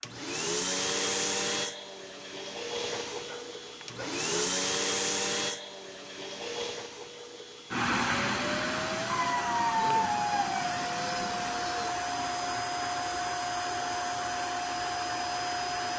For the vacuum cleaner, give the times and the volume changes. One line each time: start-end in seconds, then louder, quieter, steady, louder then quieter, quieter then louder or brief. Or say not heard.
0.0-15.9 steady.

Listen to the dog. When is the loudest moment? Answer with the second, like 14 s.
10 s.